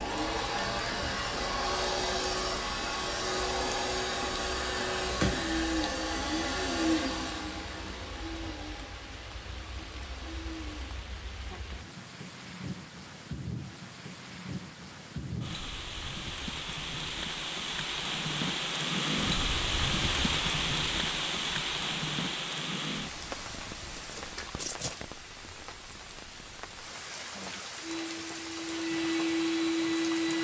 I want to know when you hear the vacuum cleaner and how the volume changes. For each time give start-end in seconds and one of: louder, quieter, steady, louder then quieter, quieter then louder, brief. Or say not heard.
0.0-11.0 quieter
27.8-30.3 brief.